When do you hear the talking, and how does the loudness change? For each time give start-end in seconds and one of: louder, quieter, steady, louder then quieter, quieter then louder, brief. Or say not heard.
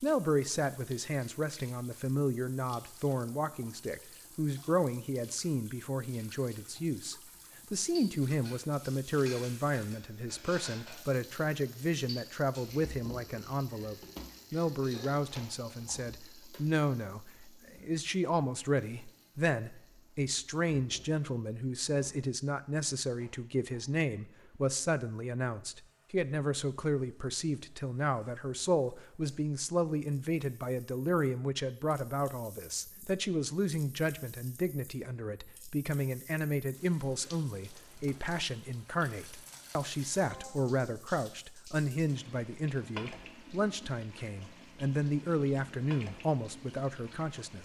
0.0-47.6 steady.